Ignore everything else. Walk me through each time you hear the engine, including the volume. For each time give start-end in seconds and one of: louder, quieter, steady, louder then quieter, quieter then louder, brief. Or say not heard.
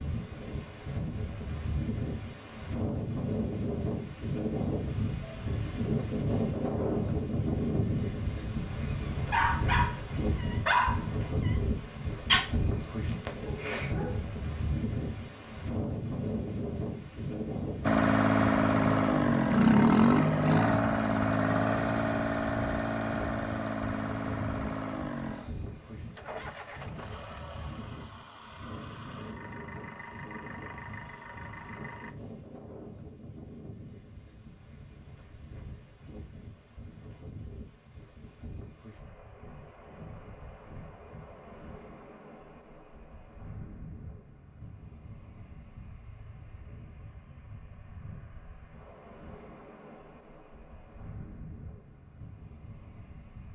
17.8-32.1 quieter.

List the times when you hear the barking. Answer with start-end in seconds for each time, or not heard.
9.3-12.4, 13.1-14.2.